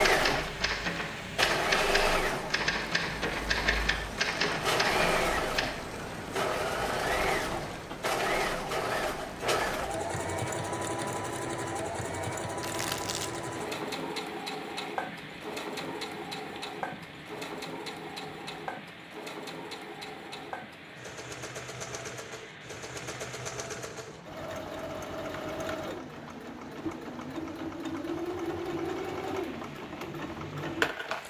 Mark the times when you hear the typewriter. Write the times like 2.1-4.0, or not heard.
0.0-5.8.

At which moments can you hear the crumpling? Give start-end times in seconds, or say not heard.
12.6-13.4.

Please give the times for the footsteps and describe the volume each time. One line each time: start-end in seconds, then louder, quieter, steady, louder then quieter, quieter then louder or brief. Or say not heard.
not heard.